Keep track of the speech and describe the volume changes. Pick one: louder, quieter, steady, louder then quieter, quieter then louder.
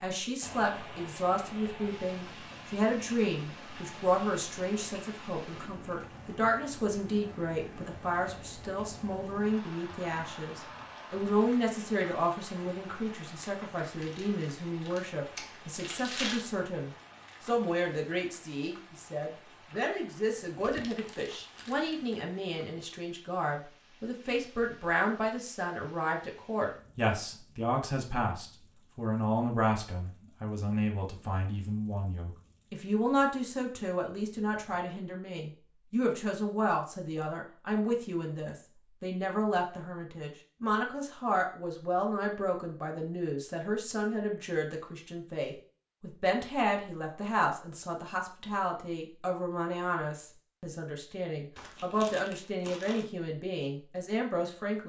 steady.